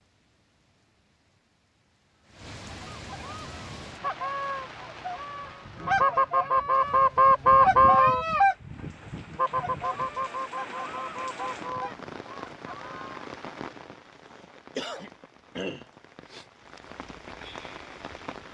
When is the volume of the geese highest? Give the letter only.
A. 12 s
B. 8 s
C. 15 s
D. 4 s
B.